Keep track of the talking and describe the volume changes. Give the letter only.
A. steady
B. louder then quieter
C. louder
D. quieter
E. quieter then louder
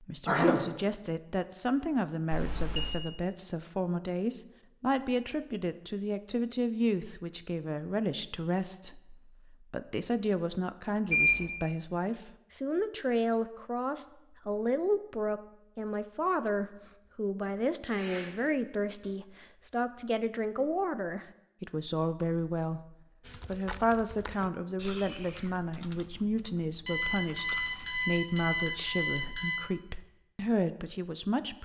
A.